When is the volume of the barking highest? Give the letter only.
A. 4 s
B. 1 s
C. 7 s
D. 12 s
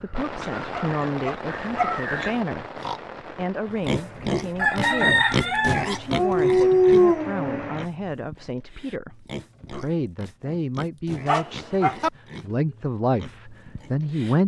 C.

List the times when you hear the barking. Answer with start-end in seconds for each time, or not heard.
0.4-2.3, 6.1-7.7, 11.2-12.1.